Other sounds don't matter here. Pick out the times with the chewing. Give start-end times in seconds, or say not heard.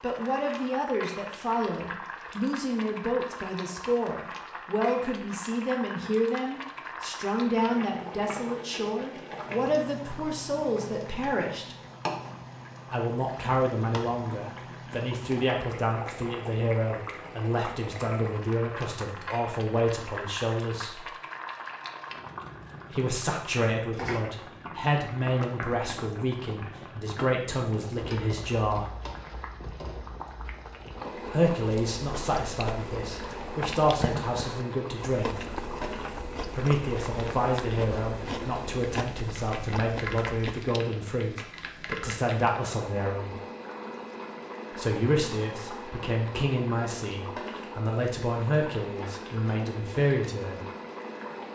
31.1-40.9.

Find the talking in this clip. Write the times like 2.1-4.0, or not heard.
0.0-11.8, 12.9-21.1, 22.9-28.9, 31.3-35.5, 36.5-43.4, 44.7-50.6.